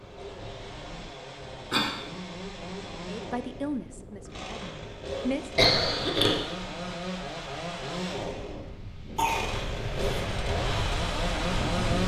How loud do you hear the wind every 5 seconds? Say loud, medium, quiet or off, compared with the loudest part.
quiet, medium, loud.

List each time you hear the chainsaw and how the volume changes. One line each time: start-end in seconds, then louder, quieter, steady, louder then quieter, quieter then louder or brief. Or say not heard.
0.0-12.0 louder.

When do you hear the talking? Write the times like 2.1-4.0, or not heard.
3.0-5.5.